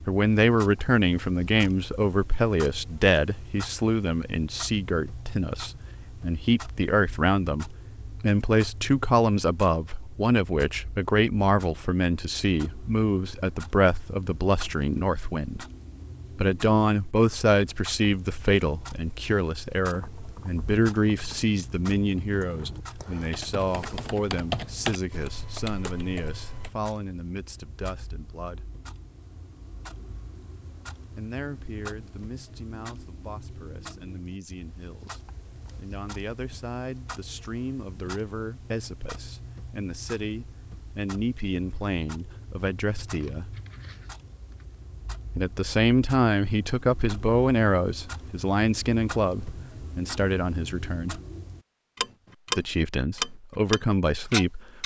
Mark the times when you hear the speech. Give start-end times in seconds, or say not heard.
0.1-15.7, 16.4-28.7, 31.1-43.5, 45.4-51.2, 52.5-54.8.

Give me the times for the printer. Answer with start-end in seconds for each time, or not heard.
not heard.